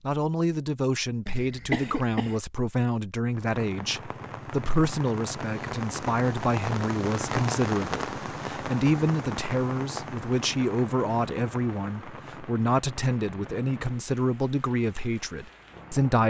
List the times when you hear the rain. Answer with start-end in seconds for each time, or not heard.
3.3-16.2.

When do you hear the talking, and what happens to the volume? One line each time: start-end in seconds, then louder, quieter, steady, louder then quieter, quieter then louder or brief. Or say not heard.
0.0-16.2 steady.